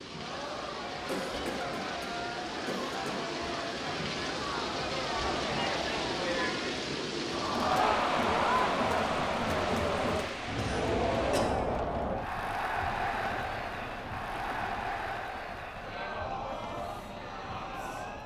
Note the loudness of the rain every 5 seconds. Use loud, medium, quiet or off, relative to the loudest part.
loud, loud, medium, quiet.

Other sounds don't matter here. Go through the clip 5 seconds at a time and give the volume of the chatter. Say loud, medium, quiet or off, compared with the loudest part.
medium, loud, loud, medium.